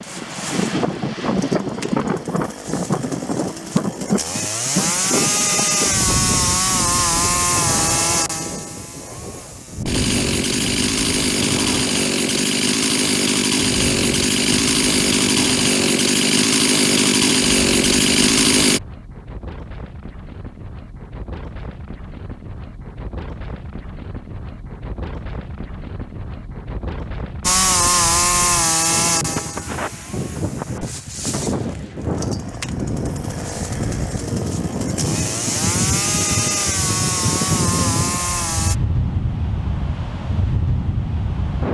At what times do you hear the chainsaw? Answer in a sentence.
You can hear the chainsaw from 0.0 to 18.8 s and from 27.4 to 38.8 s.